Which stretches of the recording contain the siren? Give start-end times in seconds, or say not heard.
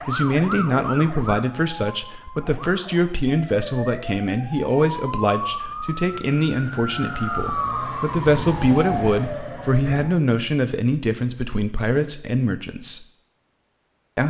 0.0-10.2.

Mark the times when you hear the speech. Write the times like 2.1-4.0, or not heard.
0.1-13.1.